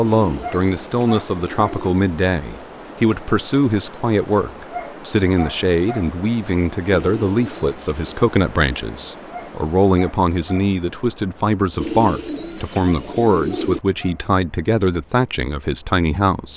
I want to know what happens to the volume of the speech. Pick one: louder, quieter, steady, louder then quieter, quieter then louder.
steady.